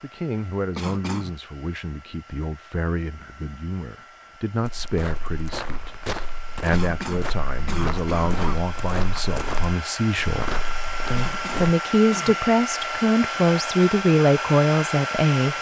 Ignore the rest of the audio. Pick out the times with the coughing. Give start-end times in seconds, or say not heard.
0.8-1.4, 6.7-8.7, 11.2-12.4.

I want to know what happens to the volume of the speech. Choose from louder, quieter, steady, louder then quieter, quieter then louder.
louder.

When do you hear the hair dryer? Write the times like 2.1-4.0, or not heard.
0.0-15.5.